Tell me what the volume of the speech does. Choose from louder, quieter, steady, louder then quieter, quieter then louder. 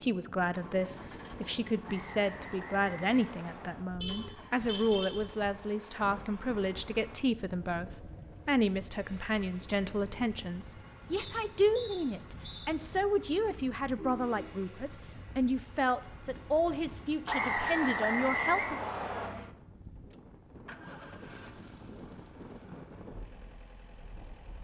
steady.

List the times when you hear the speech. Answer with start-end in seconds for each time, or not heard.
0.0-18.8.